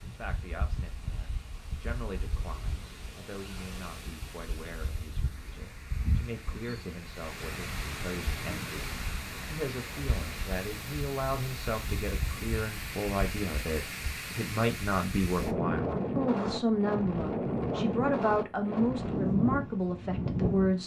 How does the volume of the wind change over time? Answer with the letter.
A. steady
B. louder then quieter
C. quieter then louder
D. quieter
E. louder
E.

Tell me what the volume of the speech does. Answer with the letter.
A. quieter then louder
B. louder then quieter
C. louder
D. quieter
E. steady
C.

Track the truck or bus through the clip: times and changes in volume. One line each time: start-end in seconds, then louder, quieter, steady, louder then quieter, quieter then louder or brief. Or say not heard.
not heard.